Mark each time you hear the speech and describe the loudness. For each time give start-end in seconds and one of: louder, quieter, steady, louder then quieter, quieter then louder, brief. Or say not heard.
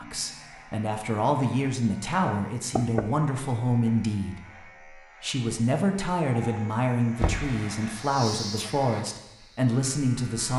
0.0-10.5 steady.